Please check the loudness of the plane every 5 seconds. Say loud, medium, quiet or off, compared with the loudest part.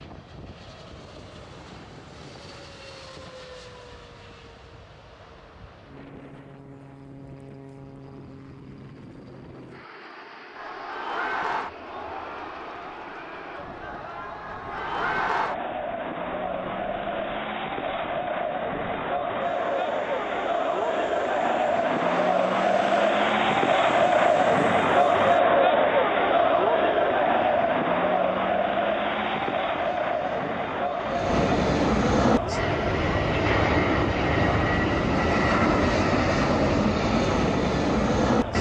quiet, quiet, quiet, quiet, quiet, quiet, loud, loud.